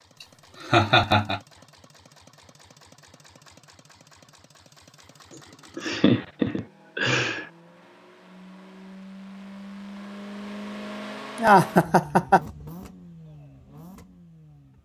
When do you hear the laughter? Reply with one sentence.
You can hear the laughter from 0.6 to 1.4 s, from 5.8 to 7.5 s and from 11.3 to 12.4 s.